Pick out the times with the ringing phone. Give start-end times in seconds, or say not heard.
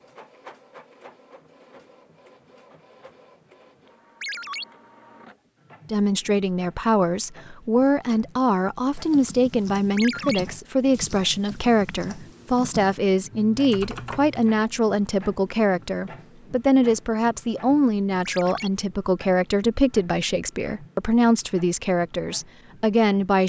4.2-4.7, 9.9-10.4, 18.2-18.7.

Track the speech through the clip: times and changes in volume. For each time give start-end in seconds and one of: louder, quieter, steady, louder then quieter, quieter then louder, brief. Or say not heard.
5.9-23.4 steady.